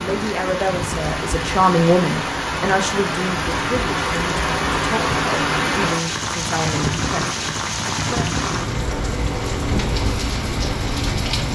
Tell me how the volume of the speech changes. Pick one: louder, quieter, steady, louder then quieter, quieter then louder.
quieter.